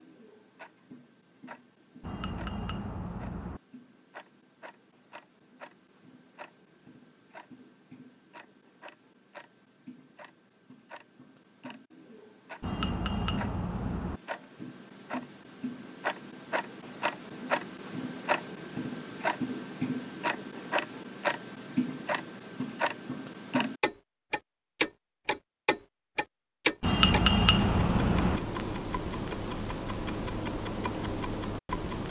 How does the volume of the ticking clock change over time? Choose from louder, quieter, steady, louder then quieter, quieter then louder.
louder.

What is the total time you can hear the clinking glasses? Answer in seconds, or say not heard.
5 s.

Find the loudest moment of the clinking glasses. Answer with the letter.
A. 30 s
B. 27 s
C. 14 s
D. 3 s
B.